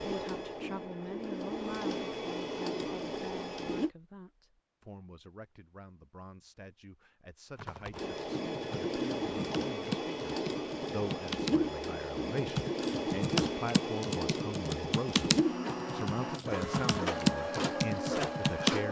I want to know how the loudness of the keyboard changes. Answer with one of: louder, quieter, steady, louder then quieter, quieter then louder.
louder.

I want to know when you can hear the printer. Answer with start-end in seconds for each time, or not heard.
0.0-3.9, 8.0-18.8.